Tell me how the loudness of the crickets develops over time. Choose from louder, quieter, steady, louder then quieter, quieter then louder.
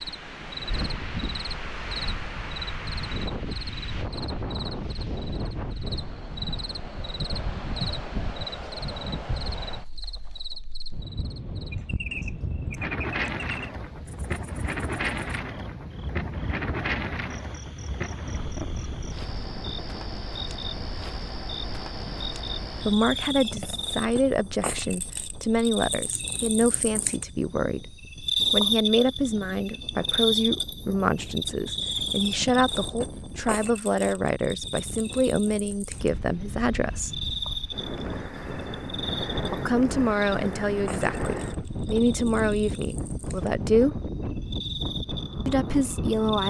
louder then quieter.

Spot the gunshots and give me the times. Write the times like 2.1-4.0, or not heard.
not heard.